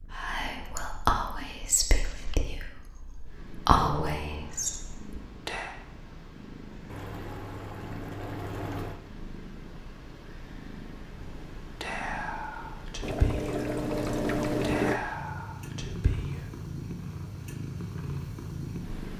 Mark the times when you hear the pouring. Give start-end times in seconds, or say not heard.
1.9-2.5, 6.9-9.0, 13.0-15.0.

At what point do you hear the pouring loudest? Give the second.
15 s.